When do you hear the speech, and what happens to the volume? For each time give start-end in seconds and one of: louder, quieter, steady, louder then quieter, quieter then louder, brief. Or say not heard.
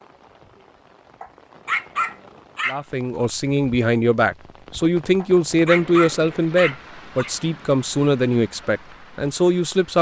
2.6-9.9 steady.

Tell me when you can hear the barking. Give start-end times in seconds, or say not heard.
1.2-3.2, 5.2-7.3.